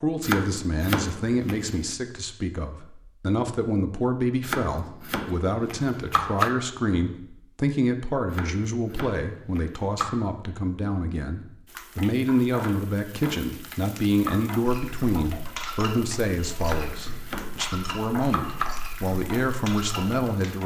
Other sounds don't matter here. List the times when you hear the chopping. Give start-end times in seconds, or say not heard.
0.2-1.9, 4.4-6.5, 8.3-10.2, 12.6-14.6, 16.6-18.7.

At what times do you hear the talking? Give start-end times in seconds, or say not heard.
0.0-20.6.